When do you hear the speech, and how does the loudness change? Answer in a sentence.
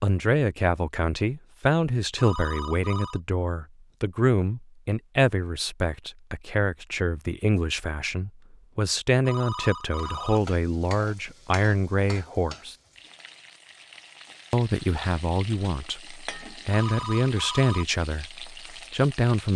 The speech can be heard from 0.0 to 12.8 s, at a steady volume; and from 14.5 to 19.5 s, getting quieter then louder.